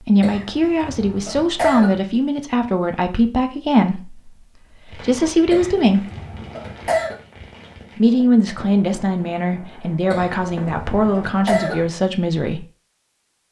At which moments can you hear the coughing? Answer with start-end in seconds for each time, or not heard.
0.2-2.0, 5.5-7.2, 10.1-11.9.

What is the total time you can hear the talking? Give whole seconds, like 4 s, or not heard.
11 s.